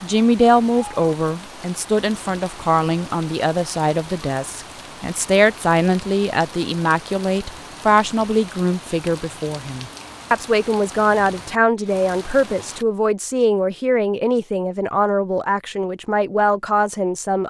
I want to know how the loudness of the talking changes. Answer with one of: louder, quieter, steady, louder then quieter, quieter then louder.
steady.